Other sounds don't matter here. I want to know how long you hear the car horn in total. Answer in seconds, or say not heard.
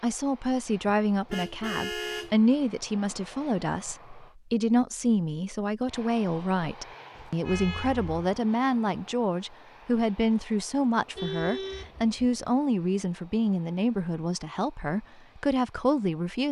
4 s.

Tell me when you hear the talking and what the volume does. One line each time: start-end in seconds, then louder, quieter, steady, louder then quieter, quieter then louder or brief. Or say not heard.
0.0-16.4 steady.